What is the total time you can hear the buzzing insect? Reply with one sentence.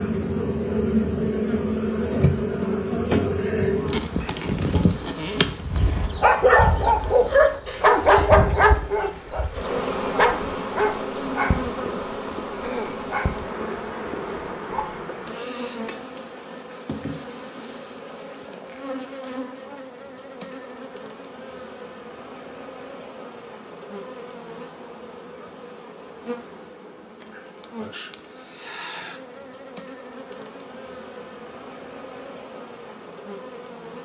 The buzzing insect can be heard for 34 seconds in total.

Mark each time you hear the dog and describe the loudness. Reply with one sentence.
The dog can be heard from 6.2 to 15.1 s, getting quieter.